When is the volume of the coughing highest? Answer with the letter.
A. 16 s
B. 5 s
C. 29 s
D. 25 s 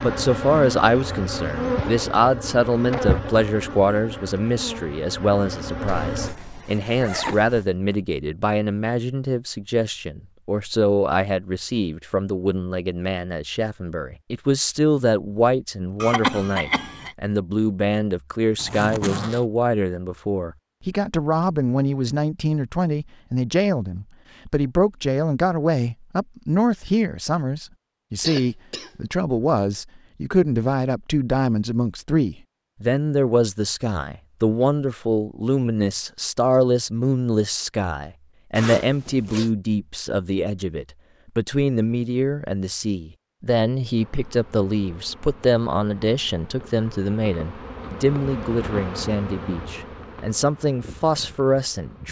A.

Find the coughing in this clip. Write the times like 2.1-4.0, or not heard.
16.0-17.1, 28.1-28.9.